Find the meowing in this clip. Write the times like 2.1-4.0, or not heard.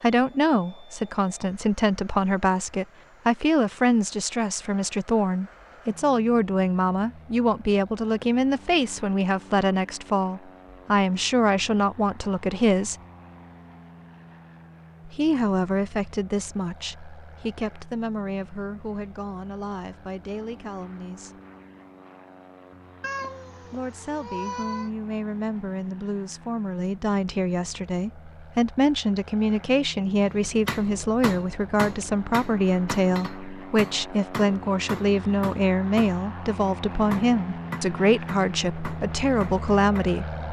23.0-24.9.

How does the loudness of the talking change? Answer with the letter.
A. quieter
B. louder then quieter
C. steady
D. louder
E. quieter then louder
E.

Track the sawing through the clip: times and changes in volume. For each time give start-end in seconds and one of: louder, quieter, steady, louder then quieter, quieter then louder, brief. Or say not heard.
not heard.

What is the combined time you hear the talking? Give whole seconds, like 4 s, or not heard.
36 s.